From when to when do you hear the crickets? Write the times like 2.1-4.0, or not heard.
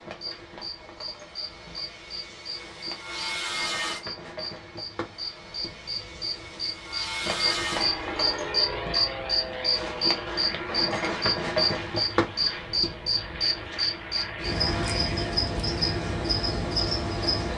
0.0-17.5.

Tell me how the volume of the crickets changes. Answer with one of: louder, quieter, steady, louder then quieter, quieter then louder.
louder.